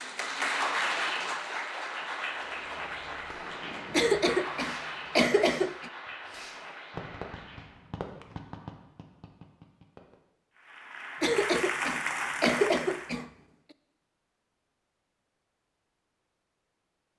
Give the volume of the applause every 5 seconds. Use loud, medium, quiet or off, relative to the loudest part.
loud, medium, loud, off.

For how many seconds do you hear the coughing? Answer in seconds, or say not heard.
4 s.